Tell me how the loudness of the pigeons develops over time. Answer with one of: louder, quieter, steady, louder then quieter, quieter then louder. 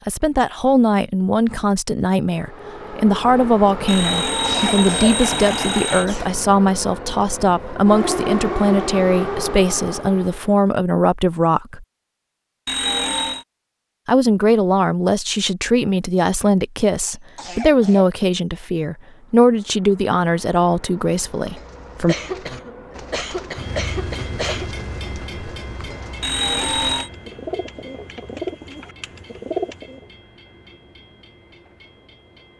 louder.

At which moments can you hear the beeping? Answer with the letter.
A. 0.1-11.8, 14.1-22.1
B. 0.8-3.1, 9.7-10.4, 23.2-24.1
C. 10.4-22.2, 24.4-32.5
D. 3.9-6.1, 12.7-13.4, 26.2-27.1
D.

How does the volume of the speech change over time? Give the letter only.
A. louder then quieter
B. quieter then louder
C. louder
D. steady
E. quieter
D.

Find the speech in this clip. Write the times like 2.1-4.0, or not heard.
0.1-11.8, 14.1-22.1.